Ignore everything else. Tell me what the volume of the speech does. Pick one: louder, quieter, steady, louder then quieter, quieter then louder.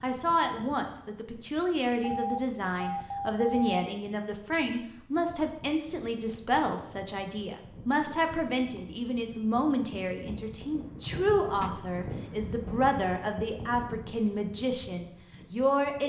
steady.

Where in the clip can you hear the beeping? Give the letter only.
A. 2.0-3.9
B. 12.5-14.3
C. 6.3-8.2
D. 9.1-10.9
A.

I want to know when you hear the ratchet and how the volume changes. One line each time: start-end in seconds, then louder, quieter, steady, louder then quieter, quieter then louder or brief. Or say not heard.
not heard.